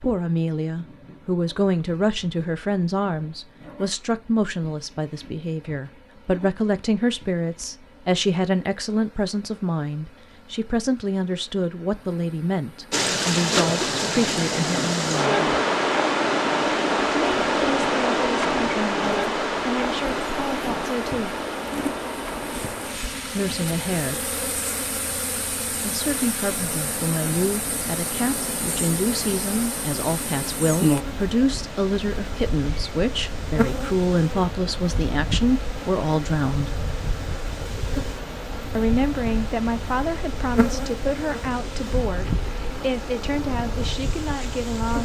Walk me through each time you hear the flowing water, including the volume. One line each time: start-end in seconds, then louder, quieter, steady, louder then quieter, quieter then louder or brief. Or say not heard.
12.9-45.0 quieter.